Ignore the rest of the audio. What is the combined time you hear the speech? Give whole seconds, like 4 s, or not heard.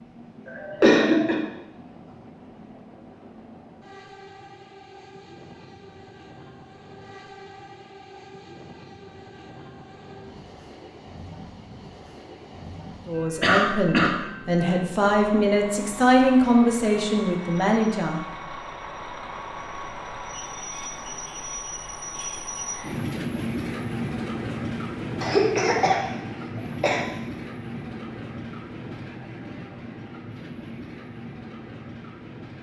5 s.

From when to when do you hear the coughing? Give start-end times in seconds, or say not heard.
0.5-1.4, 13.4-14.2, 25.2-27.1.